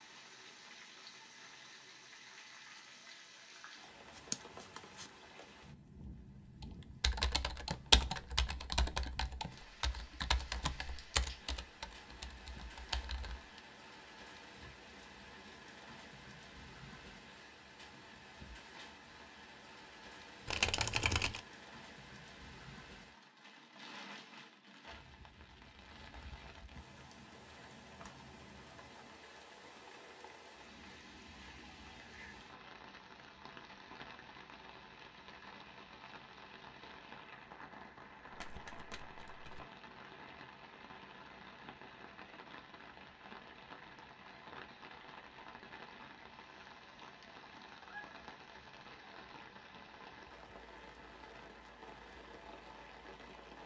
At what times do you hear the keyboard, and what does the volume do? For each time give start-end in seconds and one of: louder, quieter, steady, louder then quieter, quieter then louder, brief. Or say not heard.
6.6-13.4 quieter.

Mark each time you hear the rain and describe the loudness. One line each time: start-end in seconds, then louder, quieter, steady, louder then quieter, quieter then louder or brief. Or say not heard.
0.0-53.6 steady.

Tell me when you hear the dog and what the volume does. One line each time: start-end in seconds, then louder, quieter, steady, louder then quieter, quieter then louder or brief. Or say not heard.
not heard.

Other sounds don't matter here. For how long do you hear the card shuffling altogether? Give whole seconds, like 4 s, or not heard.
3 s.